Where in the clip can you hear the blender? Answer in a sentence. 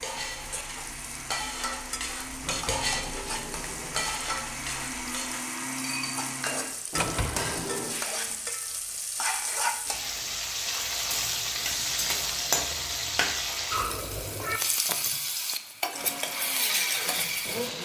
The blender can be heard from 0.0 to 7.5 s and from 15.9 to 17.8 s.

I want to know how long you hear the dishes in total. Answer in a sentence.
You can hear the dishes for 8 seconds altogether.